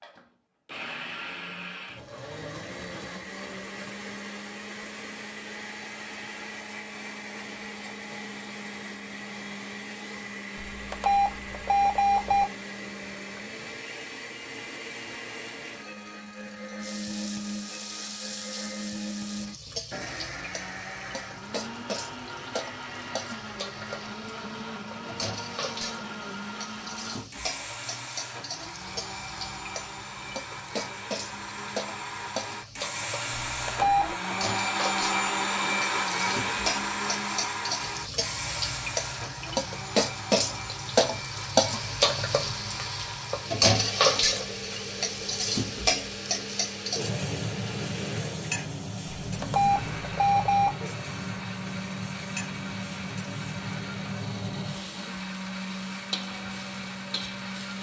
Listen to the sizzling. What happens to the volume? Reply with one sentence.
The volume of the sizzling goes up, then down.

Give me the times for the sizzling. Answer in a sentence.
You can hear the sizzling from 16.8 to 57.7 s.